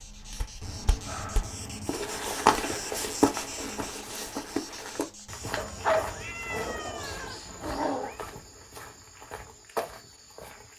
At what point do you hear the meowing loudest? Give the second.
6 s.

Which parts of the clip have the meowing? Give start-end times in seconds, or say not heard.
0.6-2.0, 5.5-8.2.